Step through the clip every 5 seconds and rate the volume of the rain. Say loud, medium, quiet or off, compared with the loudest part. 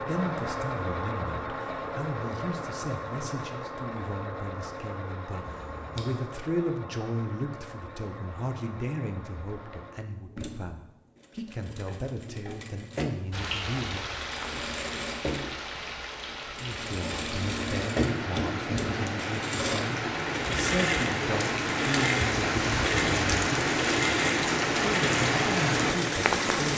off, off, medium, medium, loud, loud.